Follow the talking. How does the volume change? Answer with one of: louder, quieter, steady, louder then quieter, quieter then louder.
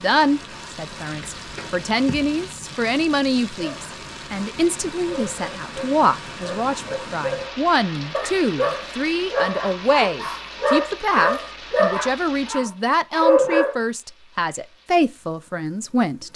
steady.